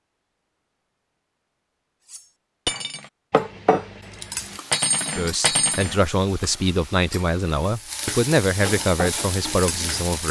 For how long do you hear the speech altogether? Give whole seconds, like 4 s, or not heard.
5 s.